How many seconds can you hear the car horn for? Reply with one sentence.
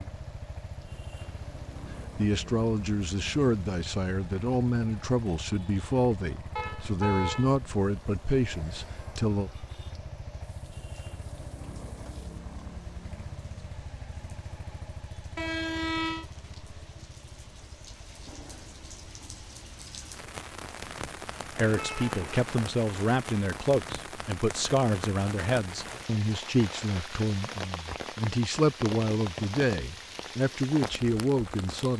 You can hear the car horn for 3 seconds altogether.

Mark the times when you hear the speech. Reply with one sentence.
The speech can be heard from 1.9 to 9.5 s and from 21.6 to 31.9 s.